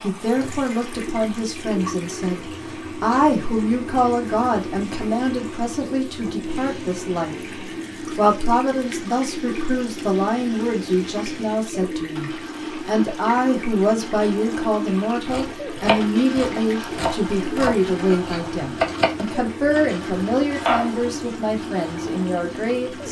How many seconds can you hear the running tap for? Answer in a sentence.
The running tap can be heard for 23 seconds in total.